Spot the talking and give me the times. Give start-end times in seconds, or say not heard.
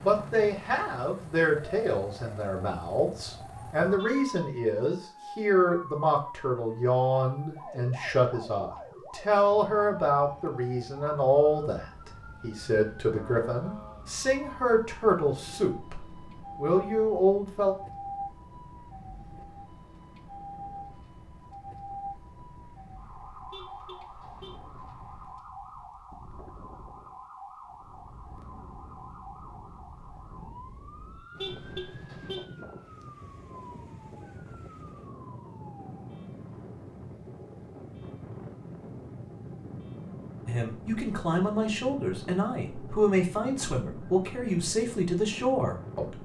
0.0-17.8, 40.5-46.2.